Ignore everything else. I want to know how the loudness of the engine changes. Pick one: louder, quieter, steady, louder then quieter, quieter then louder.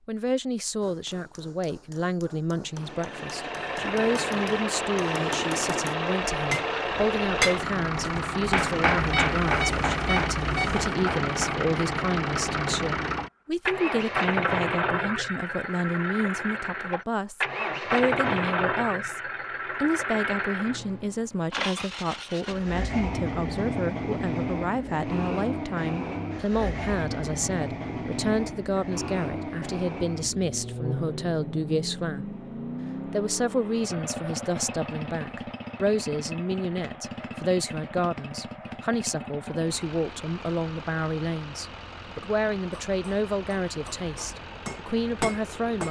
quieter.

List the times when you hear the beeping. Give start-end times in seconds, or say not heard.
8.9-10.8.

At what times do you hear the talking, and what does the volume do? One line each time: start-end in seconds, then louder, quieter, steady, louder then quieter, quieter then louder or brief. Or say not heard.
0.1-32.4 steady
33.0-45.8 steady.